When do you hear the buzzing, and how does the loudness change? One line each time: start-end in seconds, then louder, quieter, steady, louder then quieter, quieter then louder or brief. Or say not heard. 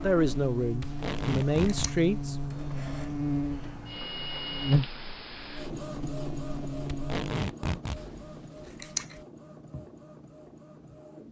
0.0-7.3 louder then quieter.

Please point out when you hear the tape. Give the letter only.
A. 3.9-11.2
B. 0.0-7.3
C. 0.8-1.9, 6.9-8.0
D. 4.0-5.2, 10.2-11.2
C.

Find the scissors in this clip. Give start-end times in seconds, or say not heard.
0.8-2.0, 8.0-9.2.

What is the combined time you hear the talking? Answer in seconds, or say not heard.
2 s.